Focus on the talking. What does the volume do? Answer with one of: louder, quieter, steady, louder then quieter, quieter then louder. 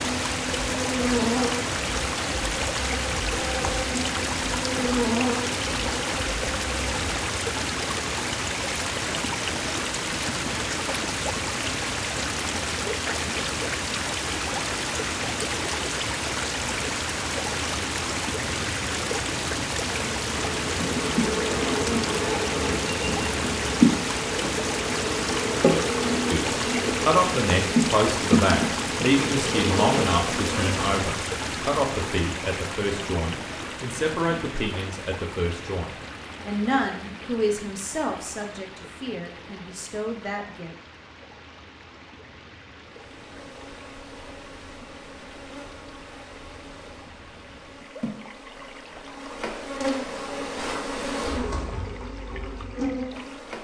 quieter.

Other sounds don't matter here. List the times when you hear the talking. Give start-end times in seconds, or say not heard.
26.2-40.7.